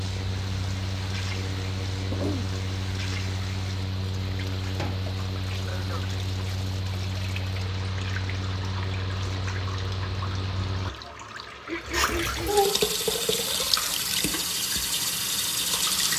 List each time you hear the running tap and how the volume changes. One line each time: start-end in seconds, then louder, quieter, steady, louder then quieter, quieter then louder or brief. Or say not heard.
0.0-16.1 louder.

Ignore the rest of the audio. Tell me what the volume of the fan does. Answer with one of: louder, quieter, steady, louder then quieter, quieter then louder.
steady.